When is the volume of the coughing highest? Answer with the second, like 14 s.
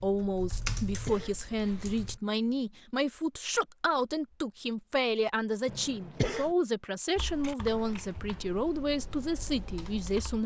6 s.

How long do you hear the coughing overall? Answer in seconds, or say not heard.
2 s.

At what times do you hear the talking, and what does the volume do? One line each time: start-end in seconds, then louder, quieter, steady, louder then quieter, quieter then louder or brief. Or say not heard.
0.0-10.4 steady.